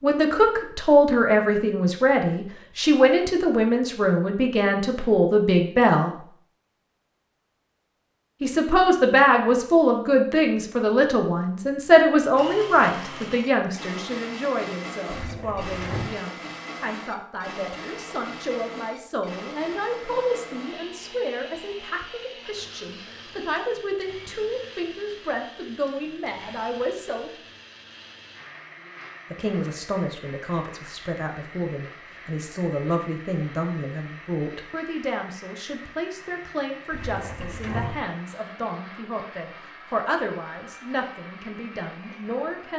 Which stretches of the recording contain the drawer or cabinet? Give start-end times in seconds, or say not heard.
15.1-16.1, 36.9-38.0.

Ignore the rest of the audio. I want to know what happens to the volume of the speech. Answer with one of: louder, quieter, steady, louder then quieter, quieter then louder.
quieter.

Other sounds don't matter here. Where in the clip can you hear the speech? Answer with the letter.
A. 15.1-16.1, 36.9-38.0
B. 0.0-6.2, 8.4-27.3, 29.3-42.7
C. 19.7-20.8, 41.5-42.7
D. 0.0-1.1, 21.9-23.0
B.